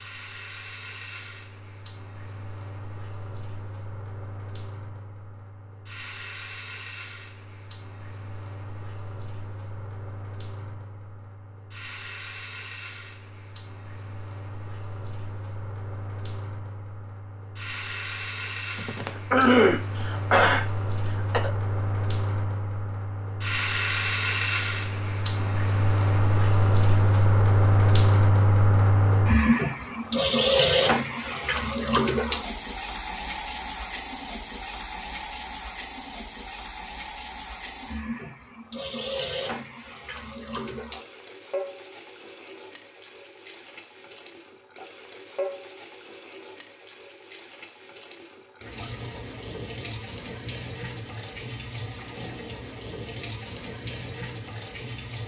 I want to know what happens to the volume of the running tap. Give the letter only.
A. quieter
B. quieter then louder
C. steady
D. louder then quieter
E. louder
D.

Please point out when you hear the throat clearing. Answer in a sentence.
The throat clearing can be heard from 18.8 to 21.5 s.